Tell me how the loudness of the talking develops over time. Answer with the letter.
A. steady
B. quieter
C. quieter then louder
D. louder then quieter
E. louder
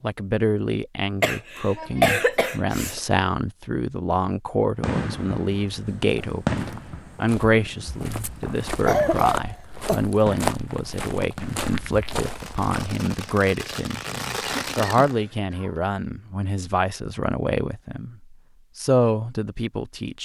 A.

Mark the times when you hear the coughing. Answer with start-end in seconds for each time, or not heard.
1.2-3.0, 8.8-10.0, 14.4-15.8.